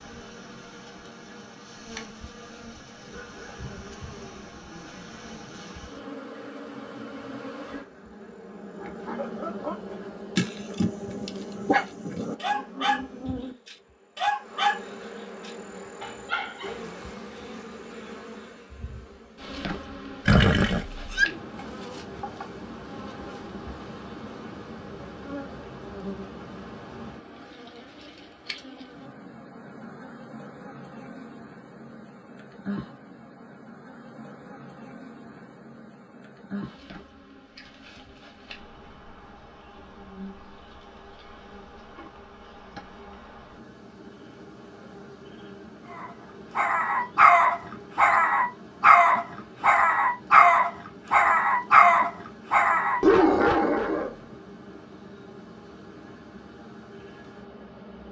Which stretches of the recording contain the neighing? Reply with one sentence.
You can hear the neighing from 20.2 to 21.2 s.